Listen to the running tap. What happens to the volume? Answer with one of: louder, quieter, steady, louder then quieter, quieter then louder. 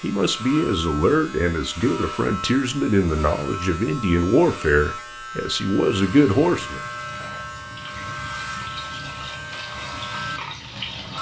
louder.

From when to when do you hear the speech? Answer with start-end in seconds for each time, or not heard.
0.0-6.8.